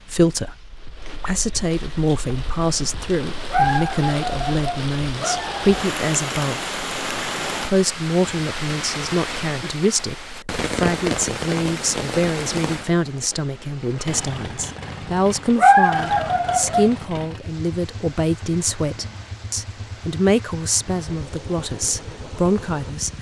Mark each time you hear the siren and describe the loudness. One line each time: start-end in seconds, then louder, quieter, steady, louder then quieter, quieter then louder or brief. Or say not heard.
not heard.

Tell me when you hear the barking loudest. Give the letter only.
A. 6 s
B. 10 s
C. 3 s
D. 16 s
D.